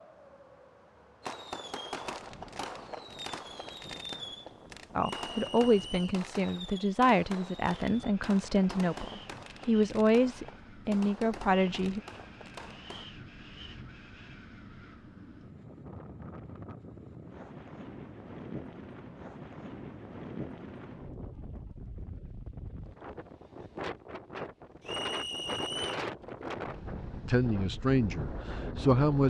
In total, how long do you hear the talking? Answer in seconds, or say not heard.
9 s.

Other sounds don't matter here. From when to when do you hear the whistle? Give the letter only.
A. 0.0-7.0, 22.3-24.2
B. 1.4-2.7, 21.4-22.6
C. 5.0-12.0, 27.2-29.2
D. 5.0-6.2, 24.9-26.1
D.